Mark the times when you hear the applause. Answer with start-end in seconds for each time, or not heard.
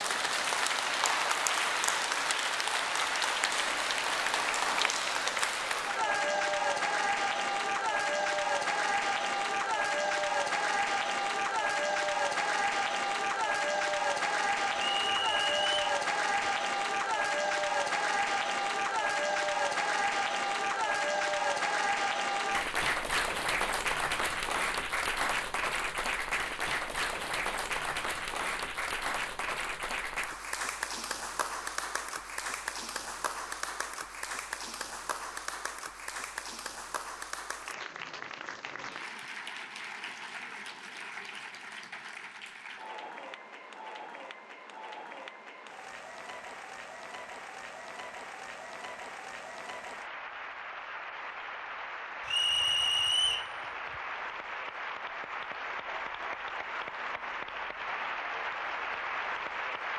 0.0-59.9.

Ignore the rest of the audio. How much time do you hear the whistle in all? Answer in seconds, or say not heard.
2 s.